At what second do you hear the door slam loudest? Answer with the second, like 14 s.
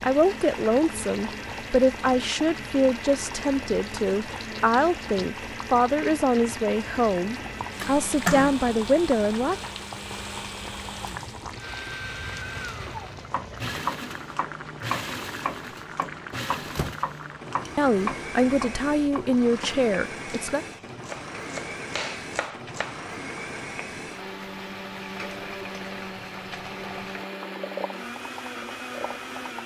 8 s.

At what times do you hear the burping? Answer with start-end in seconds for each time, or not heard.
not heard.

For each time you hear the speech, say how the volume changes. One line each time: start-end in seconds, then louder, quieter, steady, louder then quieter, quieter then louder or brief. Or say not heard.
0.0-9.7 steady
17.8-20.6 brief.